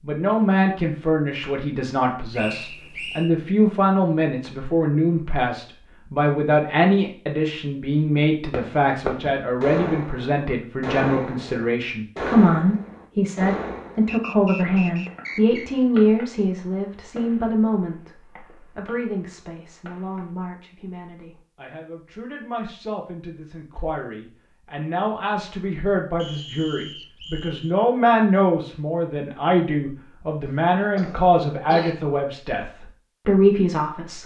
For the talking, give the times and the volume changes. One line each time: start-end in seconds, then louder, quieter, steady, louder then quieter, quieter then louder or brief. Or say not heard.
0.0-34.2 quieter then louder.